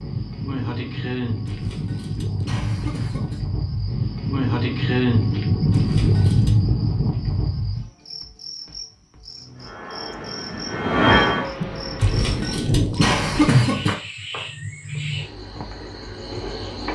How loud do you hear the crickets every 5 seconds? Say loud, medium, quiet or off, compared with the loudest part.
loud, loud, medium, medium.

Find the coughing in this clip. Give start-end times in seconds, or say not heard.
1.4-3.4, 5.7-6.6, 12.0-13.9.